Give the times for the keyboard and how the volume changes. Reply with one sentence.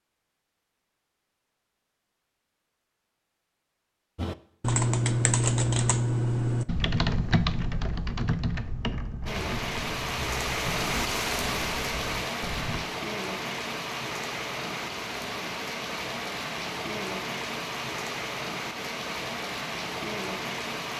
The keyboard can be heard from 4.2 to 12.8 s, getting quieter.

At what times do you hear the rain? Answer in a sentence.
You can hear the rain from 9.2 to 20.9 s.